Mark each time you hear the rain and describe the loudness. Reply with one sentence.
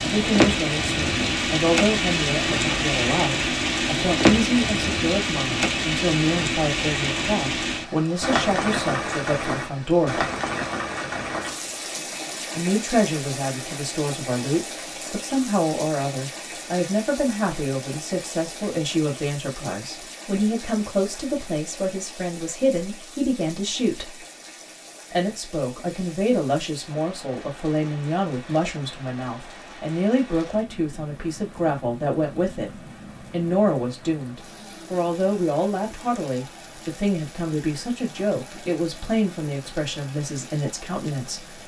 The rain can be heard from 0.0 to 41.6 s, getting quieter.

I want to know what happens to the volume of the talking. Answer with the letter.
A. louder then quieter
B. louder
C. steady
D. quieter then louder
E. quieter
C.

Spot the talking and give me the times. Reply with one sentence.
You can hear the talking from 0.0 to 10.2 s, from 12.6 to 24.2 s, from 25.1 to 32.7 s and from 33.3 to 41.6 s.